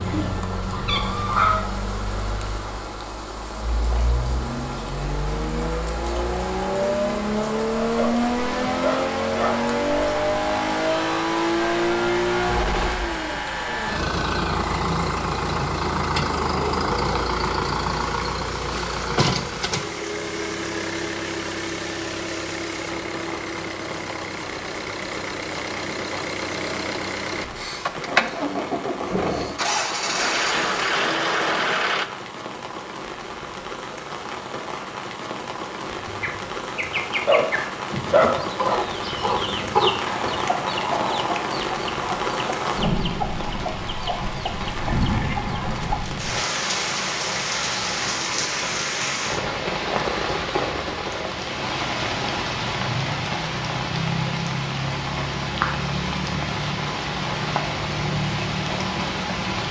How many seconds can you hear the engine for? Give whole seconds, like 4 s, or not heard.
32 s.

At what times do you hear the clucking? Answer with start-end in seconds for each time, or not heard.
0.0-1.6, 36.0-46.1.